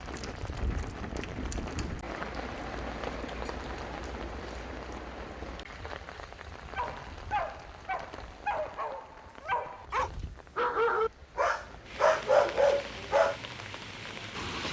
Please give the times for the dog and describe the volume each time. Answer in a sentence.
The dog can be heard from 6.8 to 13.3 s, getting louder.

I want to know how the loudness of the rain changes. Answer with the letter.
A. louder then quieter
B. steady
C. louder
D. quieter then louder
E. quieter
D.